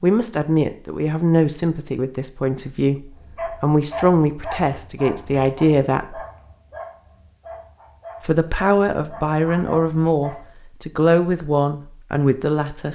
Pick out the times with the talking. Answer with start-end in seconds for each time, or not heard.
0.0-3.0, 3.6-6.2, 8.2-12.9.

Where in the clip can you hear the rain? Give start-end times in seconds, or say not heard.
not heard.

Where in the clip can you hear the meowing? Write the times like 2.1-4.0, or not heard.
not heard.